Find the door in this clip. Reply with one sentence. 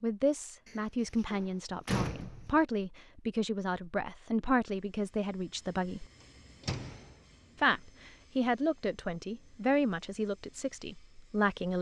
You can hear the door from 0.7 to 2.6 s and from 6.6 to 7.2 s.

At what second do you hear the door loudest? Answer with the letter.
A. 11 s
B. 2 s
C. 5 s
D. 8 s
B.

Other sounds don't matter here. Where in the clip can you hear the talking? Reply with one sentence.
The talking can be heard from 0.0 to 6.0 s and from 7.6 to 11.7 s.